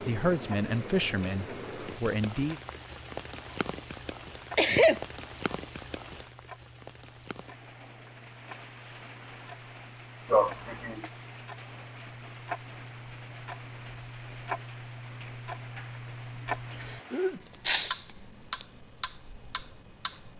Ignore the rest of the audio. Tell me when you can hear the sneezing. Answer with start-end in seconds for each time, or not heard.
4.5-5.0, 10.3-11.2, 17.1-18.0.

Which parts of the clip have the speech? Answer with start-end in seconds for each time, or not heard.
0.0-2.6.